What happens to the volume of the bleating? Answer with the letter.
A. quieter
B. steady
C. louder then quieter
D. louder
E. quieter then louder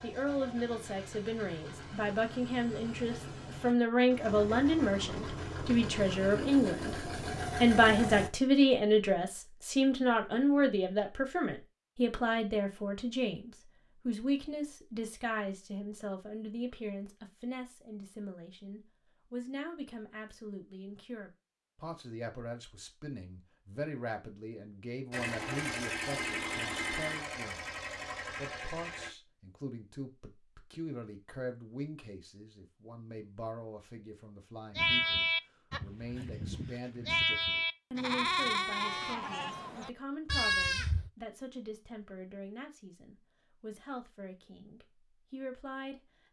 B.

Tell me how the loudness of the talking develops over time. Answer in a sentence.
The volume of the talking goes down.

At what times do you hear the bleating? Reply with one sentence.
You can hear the bleating from 34.8 to 41.1 s.